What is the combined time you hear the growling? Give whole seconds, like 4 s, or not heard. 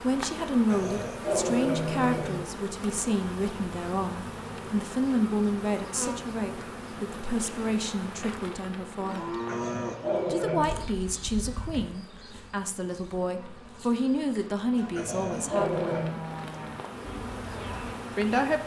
4 s.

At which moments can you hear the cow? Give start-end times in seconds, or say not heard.
8.9-18.0.